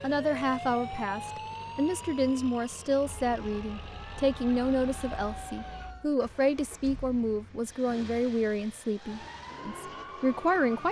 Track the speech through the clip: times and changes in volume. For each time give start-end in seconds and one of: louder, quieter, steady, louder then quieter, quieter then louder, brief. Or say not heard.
0.0-10.8 steady.